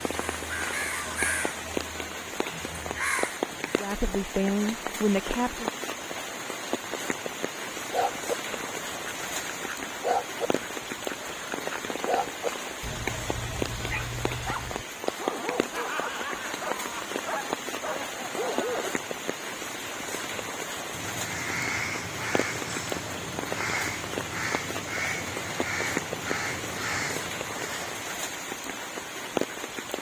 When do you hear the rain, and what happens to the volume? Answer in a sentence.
The rain can be heard from 0.0 to 29.9 s, at a steady volume.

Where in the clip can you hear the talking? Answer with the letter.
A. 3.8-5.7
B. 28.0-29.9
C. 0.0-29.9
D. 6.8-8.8
A.